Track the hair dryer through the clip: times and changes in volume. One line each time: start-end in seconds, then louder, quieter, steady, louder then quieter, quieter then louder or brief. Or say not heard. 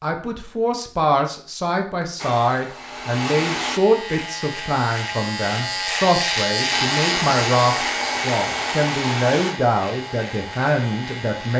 2.1-3.8 brief
6.7-11.5 quieter.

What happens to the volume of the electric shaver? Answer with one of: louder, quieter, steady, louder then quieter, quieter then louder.
louder then quieter.